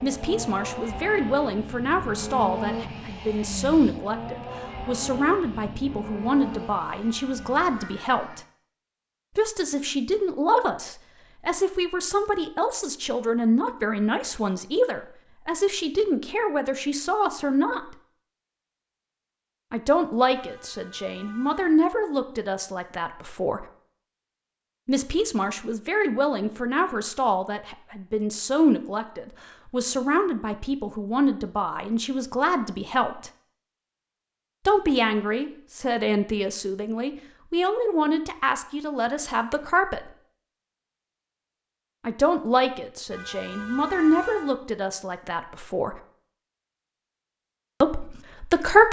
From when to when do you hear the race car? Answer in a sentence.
The race car can be heard from 0.0 to 8.4 s.